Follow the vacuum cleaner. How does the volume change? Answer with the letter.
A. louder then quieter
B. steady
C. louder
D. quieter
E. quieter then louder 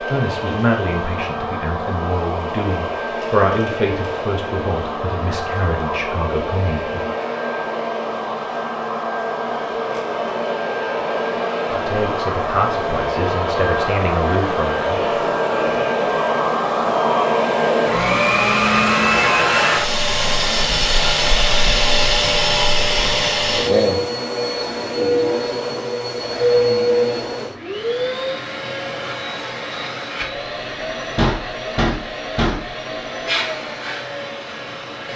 A.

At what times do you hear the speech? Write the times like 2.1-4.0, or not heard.
0.0-7.1, 11.7-15.0.